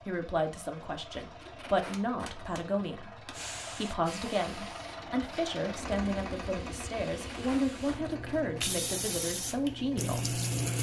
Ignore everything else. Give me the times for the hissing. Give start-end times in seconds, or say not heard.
3.3-10.7.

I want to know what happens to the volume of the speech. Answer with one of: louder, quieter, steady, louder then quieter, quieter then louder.
steady.